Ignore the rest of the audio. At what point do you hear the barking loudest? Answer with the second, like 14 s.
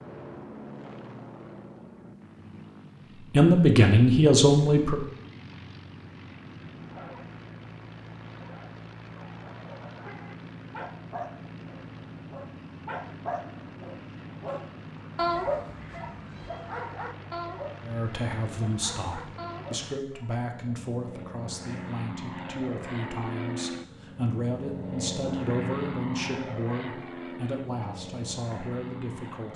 15 s.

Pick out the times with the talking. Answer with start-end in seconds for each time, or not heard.
3.3-5.0, 17.8-29.5.